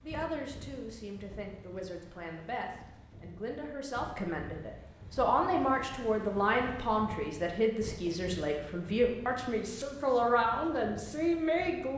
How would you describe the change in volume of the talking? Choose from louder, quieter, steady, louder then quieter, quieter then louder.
louder.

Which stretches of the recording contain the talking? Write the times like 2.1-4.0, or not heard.
0.0-11.9.